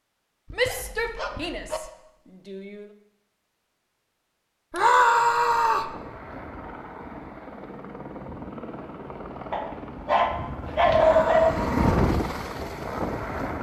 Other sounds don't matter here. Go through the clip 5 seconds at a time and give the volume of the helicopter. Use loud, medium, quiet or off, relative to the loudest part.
off, medium, loud.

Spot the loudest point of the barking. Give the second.
11 s.